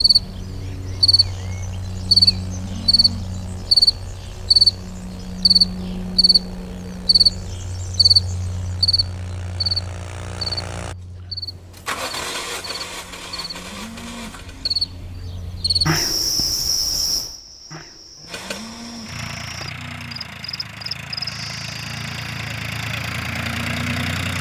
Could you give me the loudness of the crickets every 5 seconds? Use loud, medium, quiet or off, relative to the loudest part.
loud, loud, quiet, medium, quiet.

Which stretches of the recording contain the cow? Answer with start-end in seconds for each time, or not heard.
2.5-3.3, 13.6-14.3, 18.1-19.1.